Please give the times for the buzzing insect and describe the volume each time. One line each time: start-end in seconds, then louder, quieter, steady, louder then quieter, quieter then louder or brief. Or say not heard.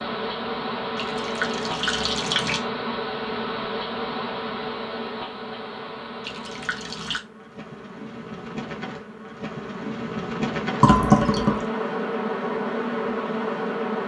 0.0-14.0 quieter then louder.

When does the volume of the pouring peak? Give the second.
11 s.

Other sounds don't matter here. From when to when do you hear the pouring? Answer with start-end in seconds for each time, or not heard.
0.9-2.6, 6.2-7.2, 10.8-11.7.